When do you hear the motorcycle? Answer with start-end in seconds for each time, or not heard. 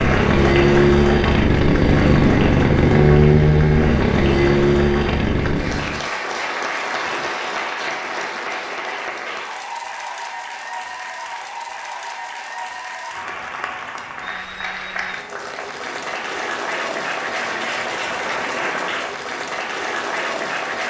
0.0-6.0.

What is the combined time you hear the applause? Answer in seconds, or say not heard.
21 s.